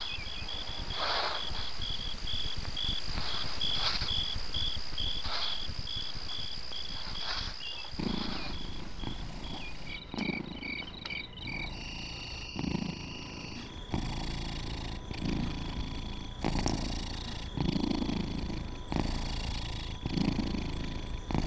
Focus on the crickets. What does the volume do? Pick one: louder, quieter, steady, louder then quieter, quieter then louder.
quieter.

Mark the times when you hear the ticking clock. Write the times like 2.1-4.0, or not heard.
not heard.